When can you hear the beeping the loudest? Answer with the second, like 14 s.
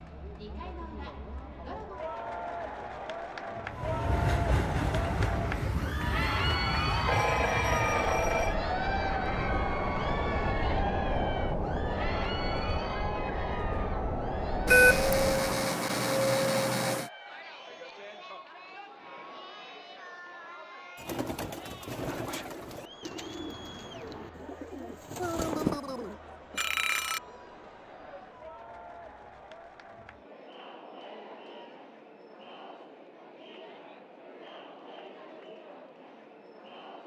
15 s.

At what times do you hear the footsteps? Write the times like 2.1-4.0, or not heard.
not heard.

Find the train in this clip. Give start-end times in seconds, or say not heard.
3.7-15.4.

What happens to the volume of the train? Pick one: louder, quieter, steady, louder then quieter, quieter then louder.
steady.